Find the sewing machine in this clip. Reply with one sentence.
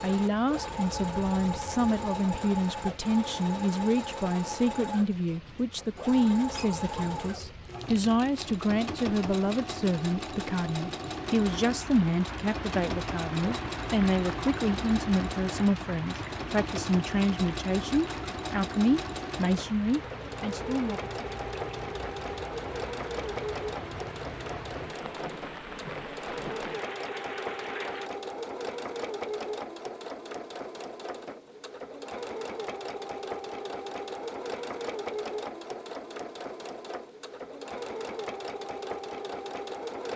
You can hear the sewing machine from 0.0 to 40.1 s.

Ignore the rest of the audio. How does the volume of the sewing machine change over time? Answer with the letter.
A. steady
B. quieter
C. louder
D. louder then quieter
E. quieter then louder
A.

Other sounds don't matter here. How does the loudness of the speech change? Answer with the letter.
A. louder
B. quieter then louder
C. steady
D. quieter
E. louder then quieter
C.